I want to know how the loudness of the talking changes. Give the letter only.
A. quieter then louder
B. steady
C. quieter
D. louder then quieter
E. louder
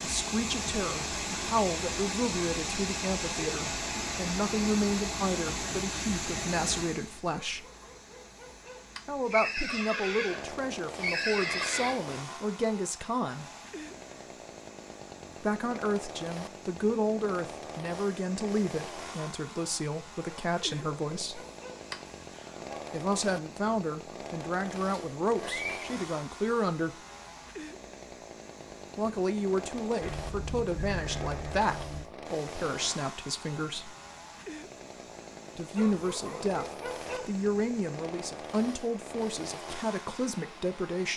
B.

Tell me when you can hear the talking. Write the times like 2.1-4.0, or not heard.
0.0-7.7, 9.1-13.4, 15.4-21.4, 22.9-26.9, 28.9-34.0, 35.5-41.1.